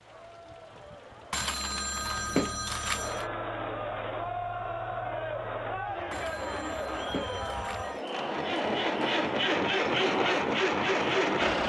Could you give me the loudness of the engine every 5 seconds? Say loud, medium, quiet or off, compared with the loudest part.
quiet, medium, loud.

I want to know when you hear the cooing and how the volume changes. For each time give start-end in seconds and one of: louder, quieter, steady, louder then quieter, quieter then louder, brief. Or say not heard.
not heard.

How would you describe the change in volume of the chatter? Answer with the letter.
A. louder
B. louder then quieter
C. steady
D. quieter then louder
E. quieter
A.